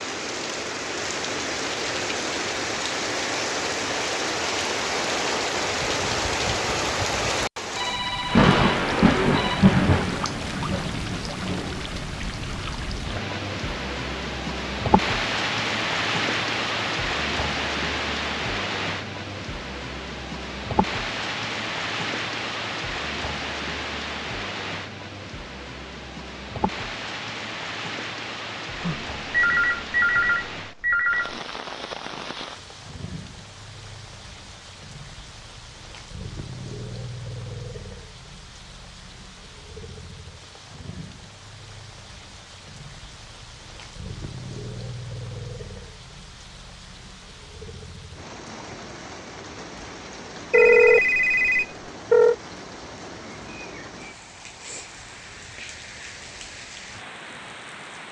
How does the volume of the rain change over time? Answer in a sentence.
The volume of the rain goes down.